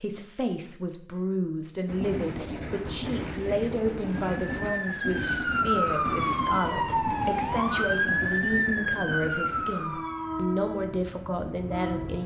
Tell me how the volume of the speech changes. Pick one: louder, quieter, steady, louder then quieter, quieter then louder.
steady.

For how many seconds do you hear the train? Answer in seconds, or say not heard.
10 s.